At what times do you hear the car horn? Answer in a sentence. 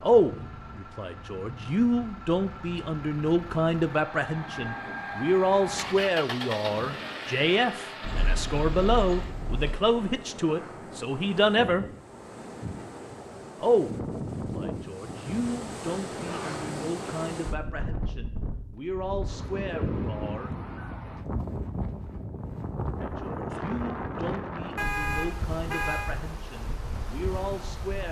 You can hear the car horn from 8.0 to 9.8 s and from 24.8 to 26.1 s.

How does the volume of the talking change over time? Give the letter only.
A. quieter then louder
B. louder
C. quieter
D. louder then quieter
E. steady
C.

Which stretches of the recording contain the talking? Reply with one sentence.
You can hear the talking from 0.0 to 11.8 s, from 13.6 to 20.6 s and from 23.0 to 28.0 s.